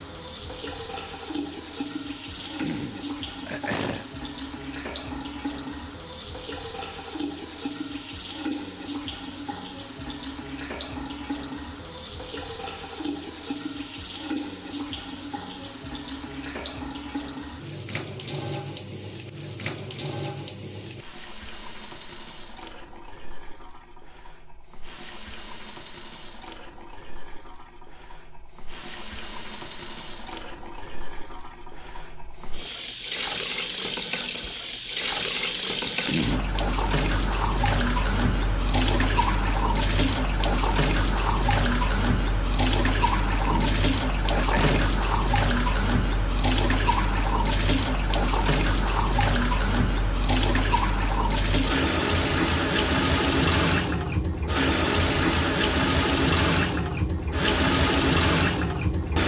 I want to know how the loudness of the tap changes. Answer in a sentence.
The loudness of the tap goes up.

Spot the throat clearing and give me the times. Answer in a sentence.
You can hear the throat clearing from 2.4 to 4.0 s, from 35.8 to 36.5 s and from 43.5 to 45.0 s.